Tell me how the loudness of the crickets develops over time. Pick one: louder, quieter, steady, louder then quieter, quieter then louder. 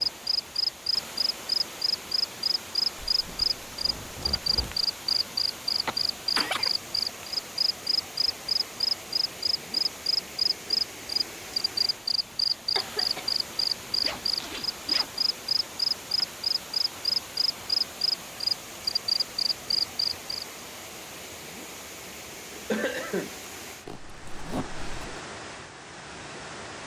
steady.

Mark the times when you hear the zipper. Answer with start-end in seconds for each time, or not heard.
3.0-4.8, 14.0-15.1, 23.9-25.2.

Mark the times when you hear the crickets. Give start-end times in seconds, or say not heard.
0.0-20.4.